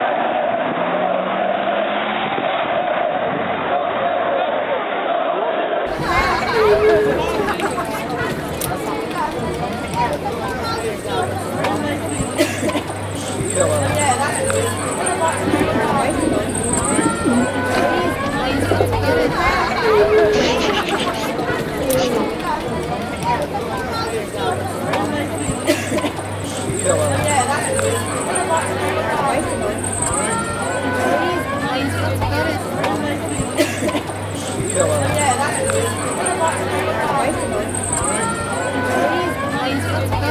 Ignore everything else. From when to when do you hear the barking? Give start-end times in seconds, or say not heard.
not heard.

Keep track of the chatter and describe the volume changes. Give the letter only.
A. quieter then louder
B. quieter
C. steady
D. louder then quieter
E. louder
C.